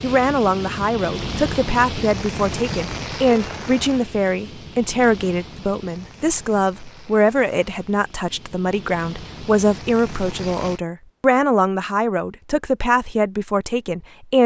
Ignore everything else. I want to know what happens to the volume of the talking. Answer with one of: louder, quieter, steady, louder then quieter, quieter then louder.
steady.